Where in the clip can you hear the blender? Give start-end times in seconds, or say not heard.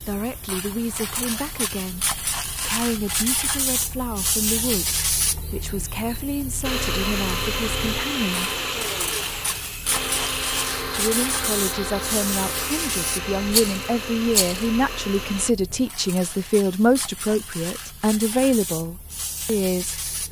6.6-15.6.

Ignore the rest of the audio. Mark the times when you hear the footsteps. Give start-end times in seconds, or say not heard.
not heard.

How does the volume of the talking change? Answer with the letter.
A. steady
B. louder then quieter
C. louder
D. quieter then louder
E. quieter
C.